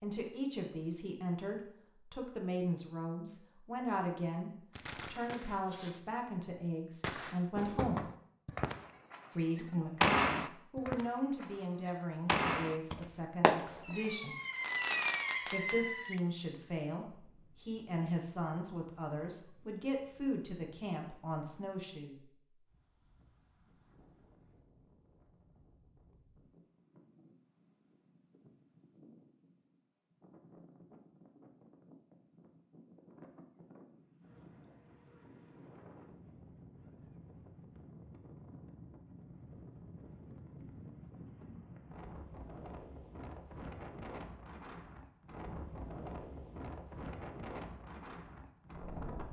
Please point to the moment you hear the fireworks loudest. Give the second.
10 s.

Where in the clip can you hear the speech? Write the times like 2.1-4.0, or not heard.
0.0-4.5, 5.1-8.1, 9.3-14.3, 15.4-22.1.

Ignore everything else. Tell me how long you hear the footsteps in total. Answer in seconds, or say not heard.
not heard.